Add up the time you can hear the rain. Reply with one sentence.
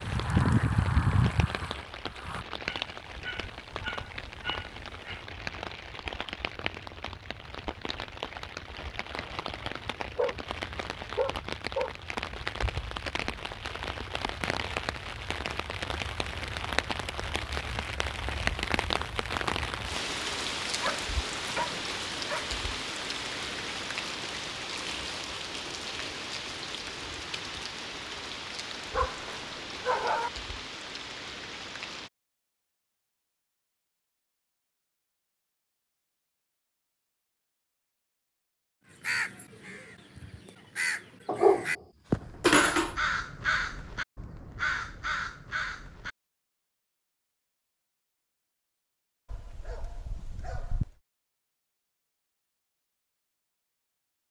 You can hear the rain for 32 seconds altogether.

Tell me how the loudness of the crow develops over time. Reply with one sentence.
The loudness of the crow goes up.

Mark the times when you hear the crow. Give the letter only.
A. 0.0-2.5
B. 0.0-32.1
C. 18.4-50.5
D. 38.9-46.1
D.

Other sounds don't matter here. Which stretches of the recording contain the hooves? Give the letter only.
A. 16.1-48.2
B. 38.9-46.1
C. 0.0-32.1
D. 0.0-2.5
D.